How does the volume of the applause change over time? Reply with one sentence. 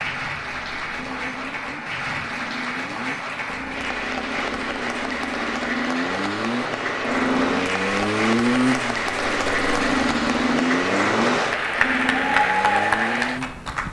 The loudness of the applause goes up.